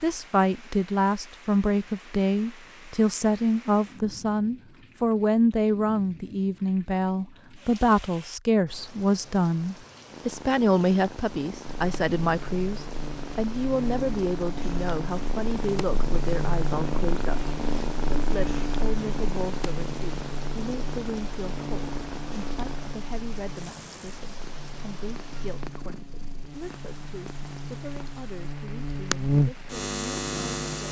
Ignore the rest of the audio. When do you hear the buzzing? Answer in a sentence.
You can hear the buzzing from 11.7 to 30.8 s.